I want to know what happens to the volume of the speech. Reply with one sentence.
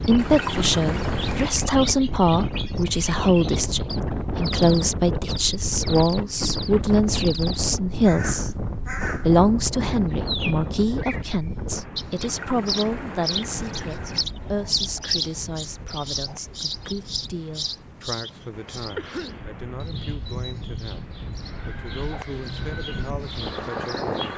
The loudness of the speech goes down.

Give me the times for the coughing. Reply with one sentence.
The coughing can be heard from 18.9 to 19.4 s.